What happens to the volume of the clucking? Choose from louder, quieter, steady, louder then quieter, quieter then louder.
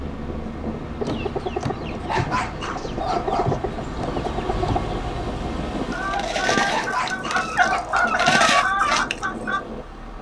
louder.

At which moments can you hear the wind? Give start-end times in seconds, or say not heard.
0.0-10.1.